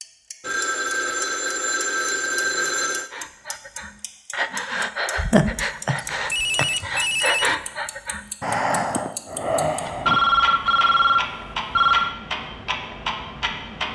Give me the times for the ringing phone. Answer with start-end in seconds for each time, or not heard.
0.4-3.1, 6.0-7.5, 9.8-12.2.